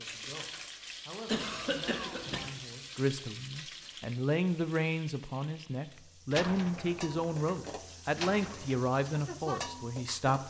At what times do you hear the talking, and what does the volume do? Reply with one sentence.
The talking can be heard from 0.0 to 10.4 s, getting louder.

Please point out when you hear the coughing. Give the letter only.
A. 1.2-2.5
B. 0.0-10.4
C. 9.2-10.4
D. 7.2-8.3
A.